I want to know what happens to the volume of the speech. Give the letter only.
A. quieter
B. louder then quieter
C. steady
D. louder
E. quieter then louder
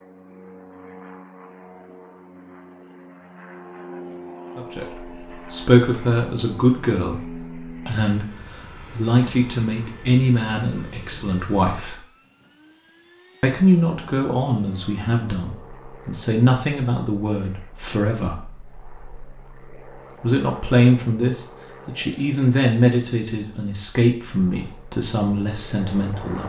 C.